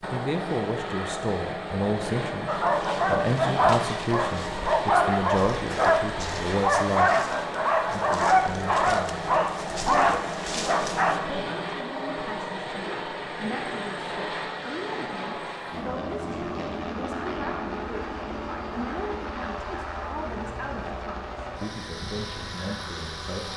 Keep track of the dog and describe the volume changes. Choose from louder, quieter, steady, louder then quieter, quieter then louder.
steady.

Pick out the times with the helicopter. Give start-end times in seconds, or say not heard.
0.0-23.5.